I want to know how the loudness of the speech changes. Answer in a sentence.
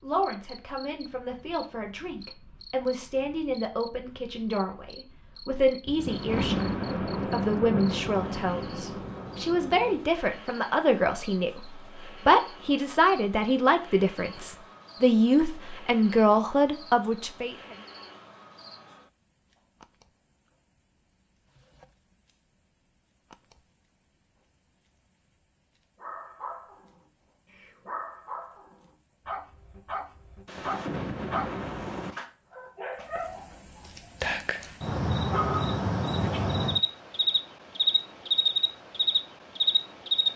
The volume of the speech goes up.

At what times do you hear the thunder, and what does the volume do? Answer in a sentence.
The thunder can be heard from 5.8 to 10.1 s, getting quieter; and briefly from 30.4 to 32.1 s.